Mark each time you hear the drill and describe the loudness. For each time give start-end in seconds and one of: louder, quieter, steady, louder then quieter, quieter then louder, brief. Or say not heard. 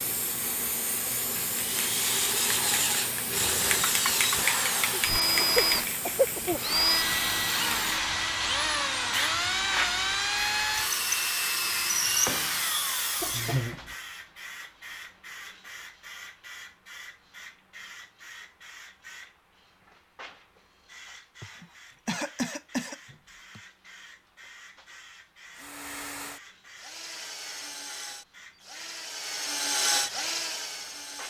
1.5-13.7 steady
25.4-31.2 louder.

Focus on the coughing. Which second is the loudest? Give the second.
6 s.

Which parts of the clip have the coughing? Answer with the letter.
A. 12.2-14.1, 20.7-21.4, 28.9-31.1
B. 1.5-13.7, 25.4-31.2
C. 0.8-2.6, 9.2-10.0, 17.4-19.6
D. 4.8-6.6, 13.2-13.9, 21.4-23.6
D.